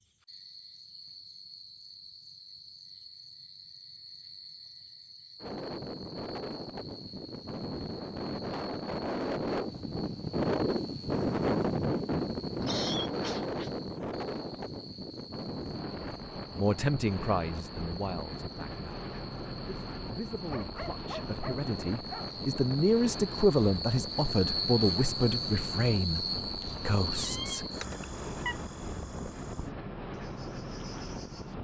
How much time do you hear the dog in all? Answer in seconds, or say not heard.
2 s.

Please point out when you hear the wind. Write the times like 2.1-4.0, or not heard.
5.4-31.5.